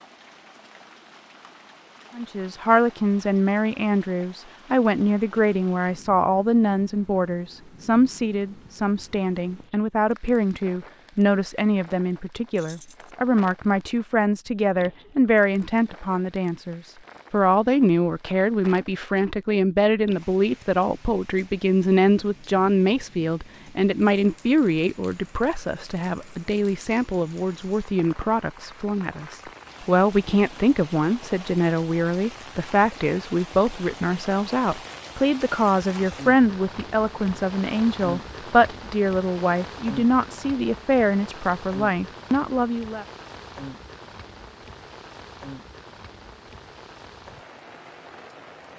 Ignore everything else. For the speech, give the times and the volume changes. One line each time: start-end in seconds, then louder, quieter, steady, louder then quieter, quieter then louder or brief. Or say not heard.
2.1-43.0 steady.